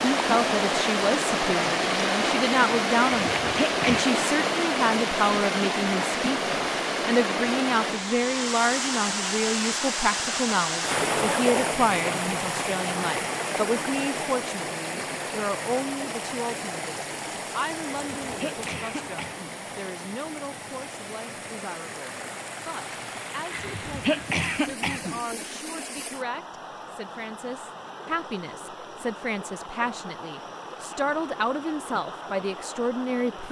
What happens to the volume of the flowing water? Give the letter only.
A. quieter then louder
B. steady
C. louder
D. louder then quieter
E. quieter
E.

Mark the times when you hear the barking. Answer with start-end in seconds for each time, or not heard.
not heard.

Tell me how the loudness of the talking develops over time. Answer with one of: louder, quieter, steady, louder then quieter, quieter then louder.
quieter then louder.